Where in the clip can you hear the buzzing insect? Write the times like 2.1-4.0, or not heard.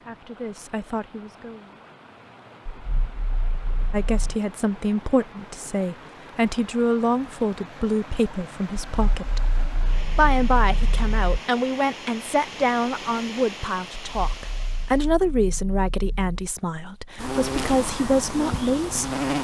17.1-19.4.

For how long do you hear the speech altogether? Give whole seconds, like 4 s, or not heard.
16 s.